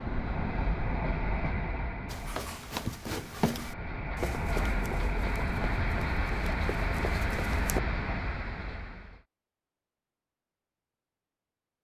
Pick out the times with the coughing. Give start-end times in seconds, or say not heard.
not heard.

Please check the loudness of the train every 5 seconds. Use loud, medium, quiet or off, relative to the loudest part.
loud, loud, off.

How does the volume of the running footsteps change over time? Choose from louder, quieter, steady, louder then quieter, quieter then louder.
quieter.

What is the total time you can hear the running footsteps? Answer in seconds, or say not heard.
6 s.